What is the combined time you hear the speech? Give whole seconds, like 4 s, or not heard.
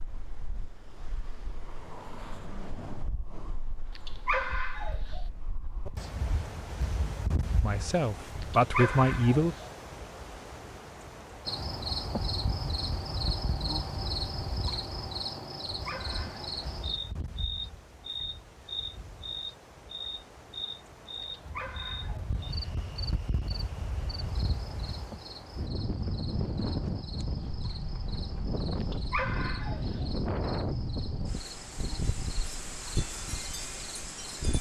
2 s.